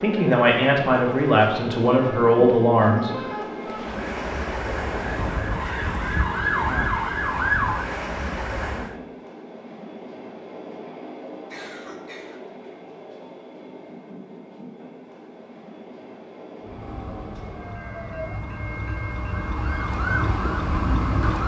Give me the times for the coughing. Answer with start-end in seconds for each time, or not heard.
11.5-12.4.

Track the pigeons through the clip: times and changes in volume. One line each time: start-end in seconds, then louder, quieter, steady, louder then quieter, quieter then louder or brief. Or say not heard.
not heard.